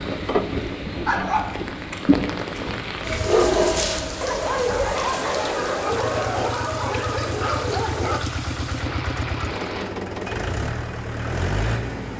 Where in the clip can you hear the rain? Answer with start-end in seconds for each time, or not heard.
0.0-9.9.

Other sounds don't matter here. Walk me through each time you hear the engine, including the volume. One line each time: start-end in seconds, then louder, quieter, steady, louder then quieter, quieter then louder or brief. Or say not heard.
0.0-12.1 quieter then louder.